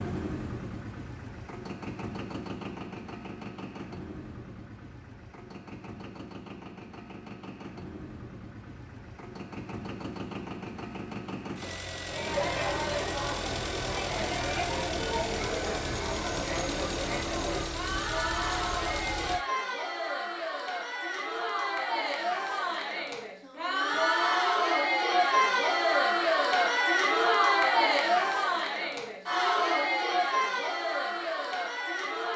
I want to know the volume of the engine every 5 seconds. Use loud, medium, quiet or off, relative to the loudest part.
loud, medium, loud, loud, off, off, off.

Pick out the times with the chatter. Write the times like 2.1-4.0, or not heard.
12.1-32.3.